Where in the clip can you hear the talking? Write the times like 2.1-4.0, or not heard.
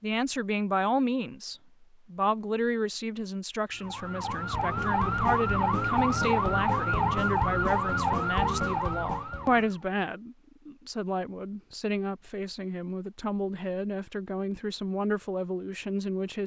0.0-16.4.